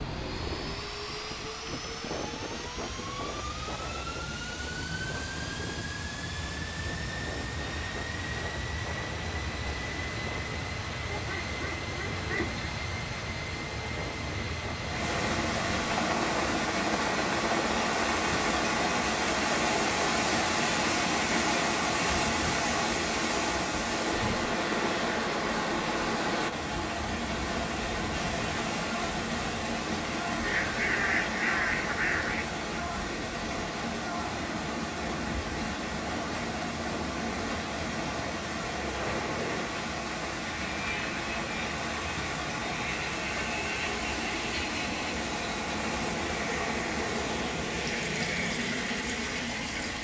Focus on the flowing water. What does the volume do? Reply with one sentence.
The volume of the flowing water goes down.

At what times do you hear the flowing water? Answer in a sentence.
The flowing water can be heard from 14.8 to 50.0 s.